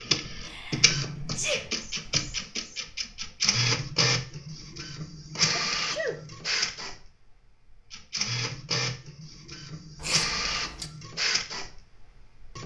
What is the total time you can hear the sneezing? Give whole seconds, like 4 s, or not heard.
3 s.